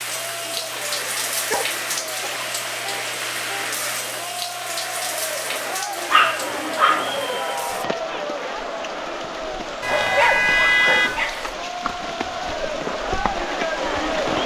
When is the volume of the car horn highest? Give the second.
11 s.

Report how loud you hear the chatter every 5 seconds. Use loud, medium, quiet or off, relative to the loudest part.
medium, loud, loud.